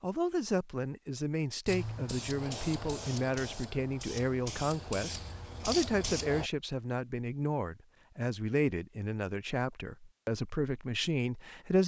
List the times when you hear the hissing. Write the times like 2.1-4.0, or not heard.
1.6-6.5.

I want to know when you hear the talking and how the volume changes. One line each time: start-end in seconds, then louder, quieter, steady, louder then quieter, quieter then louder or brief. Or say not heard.
0.0-11.8 steady.